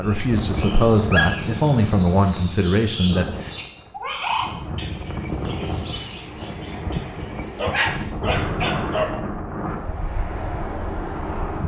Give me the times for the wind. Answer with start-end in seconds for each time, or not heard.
0.0-11.6.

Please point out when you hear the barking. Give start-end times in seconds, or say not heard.
1.1-2.8, 7.5-9.2.